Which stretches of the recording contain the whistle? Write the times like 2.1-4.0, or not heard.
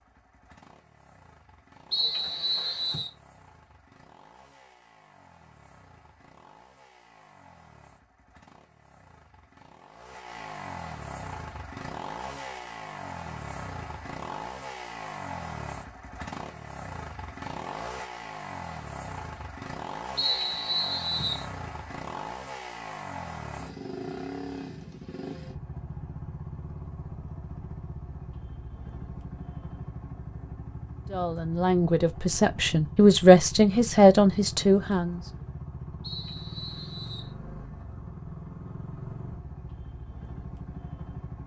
1.9-3.1, 20.1-21.4, 36.0-37.4.